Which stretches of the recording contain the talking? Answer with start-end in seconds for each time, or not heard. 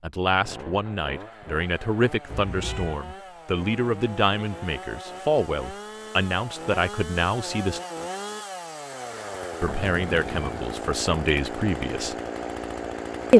0.0-7.8, 9.6-12.2.